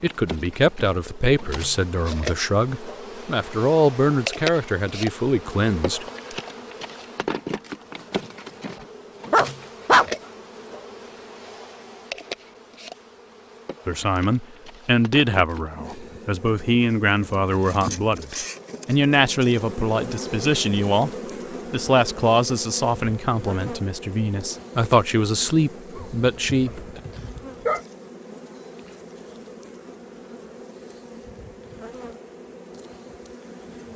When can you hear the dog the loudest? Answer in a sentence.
The volume of the dog peaks at 10 seconds.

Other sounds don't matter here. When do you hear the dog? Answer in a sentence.
The dog can be heard from 9.3 to 10.1 s and from 25.9 to 27.8 s.